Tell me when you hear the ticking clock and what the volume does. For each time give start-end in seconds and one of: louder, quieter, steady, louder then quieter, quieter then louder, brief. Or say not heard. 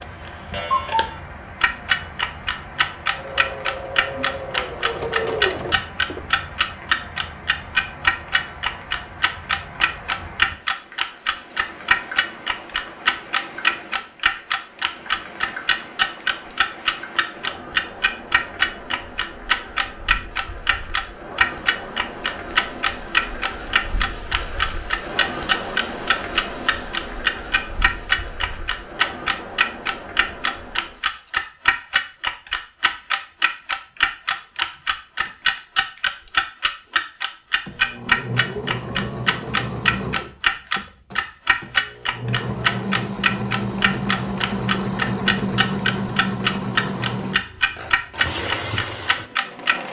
0.0-49.8 steady.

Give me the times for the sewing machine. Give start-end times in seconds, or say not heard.
3.1-6.2, 37.6-49.8.